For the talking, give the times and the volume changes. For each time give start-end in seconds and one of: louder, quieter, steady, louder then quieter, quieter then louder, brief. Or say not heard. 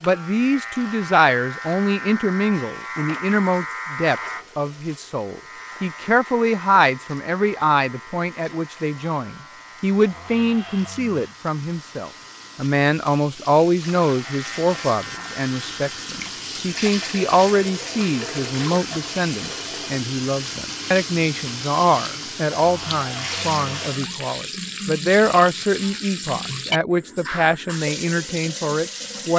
0.0-29.3 steady.